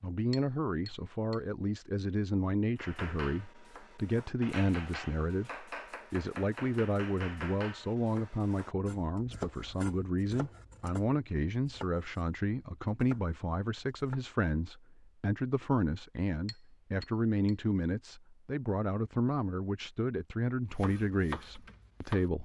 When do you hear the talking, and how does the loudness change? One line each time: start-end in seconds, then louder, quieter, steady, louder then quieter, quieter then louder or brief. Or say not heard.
0.0-22.4 steady.